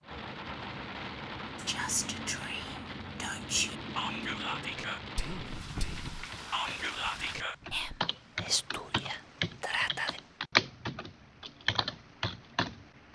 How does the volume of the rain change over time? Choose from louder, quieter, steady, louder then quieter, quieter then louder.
quieter.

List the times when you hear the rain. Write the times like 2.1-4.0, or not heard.
0.0-10.5.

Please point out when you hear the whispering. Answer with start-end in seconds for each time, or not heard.
1.6-10.2.